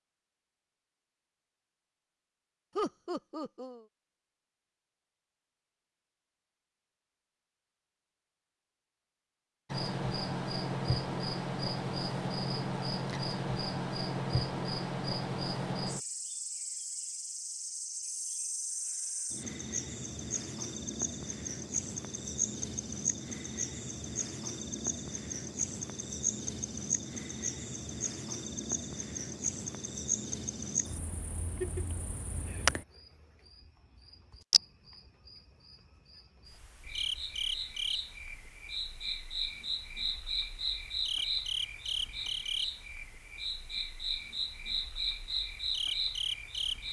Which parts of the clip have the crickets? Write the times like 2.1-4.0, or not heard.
9.7-46.8.